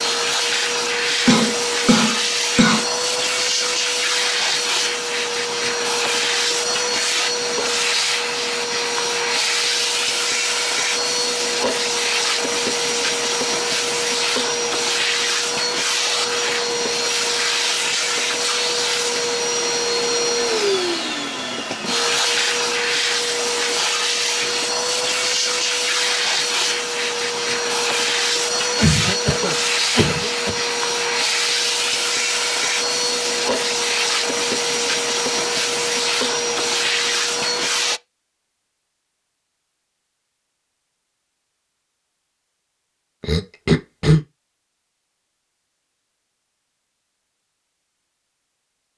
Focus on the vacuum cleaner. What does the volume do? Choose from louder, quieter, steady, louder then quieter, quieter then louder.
steady.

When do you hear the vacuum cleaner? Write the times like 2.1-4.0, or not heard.
0.0-38.0.